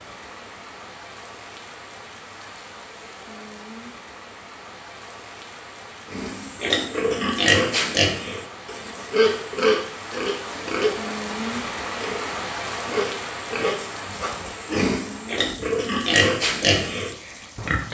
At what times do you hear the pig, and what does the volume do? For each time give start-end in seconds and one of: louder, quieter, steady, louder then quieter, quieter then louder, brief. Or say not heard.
6.1-17.8 quieter then louder.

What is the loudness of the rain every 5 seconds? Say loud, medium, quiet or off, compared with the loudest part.
medium, medium, loud, medium.